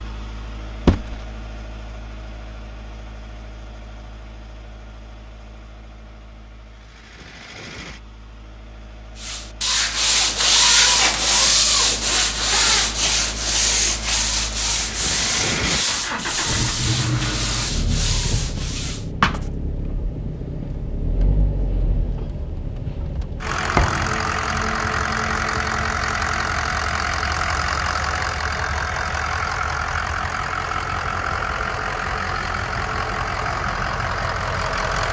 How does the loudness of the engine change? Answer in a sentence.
The loudness of the engine goes up.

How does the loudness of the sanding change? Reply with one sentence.
The loudness of the sanding goes down.